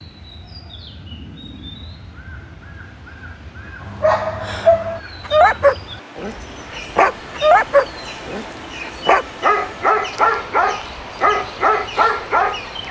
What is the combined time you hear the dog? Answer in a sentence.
You can hear the dog for 9 seconds altogether.